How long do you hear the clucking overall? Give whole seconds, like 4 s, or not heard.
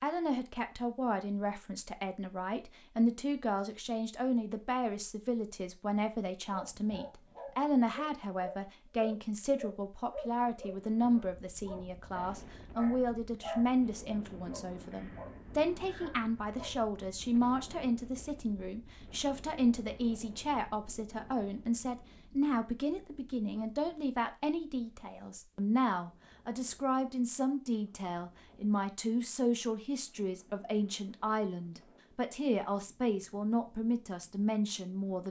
not heard.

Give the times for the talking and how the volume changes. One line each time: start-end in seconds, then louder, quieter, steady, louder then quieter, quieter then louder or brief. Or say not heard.
0.0-35.2 steady.